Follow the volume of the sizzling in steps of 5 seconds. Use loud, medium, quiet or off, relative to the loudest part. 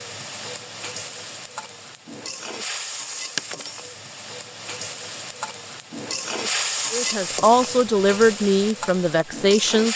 medium, loud.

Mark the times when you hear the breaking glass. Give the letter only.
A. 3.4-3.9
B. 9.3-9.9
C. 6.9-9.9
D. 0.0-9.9
A.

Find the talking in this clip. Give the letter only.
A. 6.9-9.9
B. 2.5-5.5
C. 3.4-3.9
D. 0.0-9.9
A.